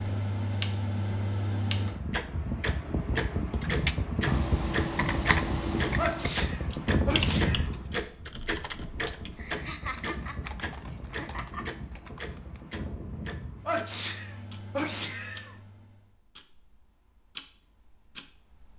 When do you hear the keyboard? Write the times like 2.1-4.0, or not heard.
3.5-12.7.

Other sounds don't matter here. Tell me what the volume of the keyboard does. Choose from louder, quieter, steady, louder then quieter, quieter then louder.
quieter.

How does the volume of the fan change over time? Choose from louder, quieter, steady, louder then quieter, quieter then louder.
quieter.